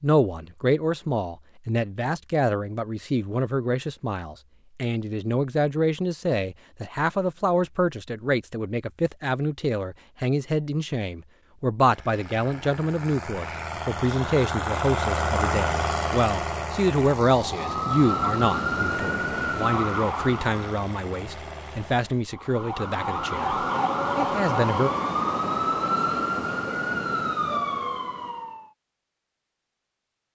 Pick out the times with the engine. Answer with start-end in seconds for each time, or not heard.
11.8-22.3.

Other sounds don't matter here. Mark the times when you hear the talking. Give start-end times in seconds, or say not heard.
0.0-24.9.